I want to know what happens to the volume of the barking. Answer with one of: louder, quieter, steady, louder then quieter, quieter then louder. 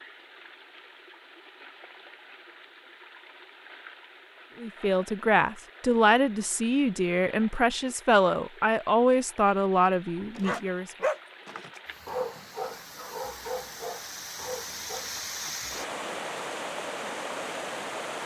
quieter.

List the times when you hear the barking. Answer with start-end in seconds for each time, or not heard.
10.3-15.2.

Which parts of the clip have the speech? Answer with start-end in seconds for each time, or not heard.
4.6-10.9.